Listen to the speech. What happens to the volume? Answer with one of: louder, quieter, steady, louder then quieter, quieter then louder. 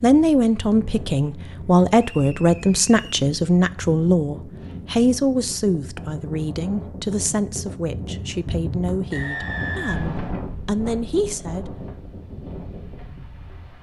quieter.